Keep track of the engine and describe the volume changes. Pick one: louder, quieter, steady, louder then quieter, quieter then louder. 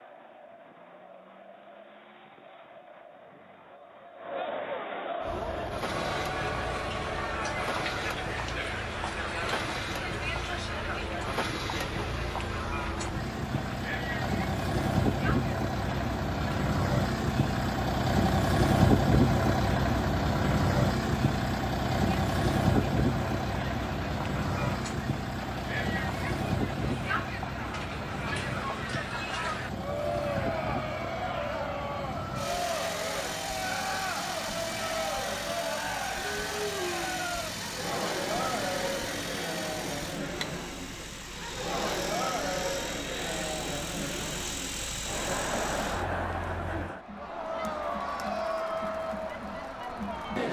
louder then quieter.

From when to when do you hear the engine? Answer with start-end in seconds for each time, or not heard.
5.2-46.8.